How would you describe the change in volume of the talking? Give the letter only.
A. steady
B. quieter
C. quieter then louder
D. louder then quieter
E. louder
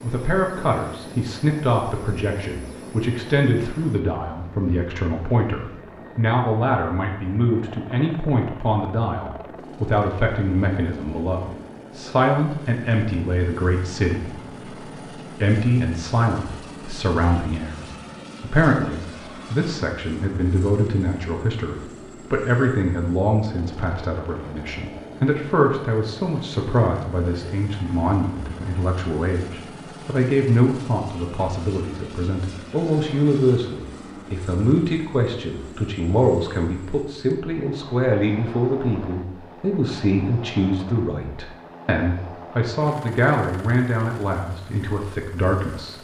A.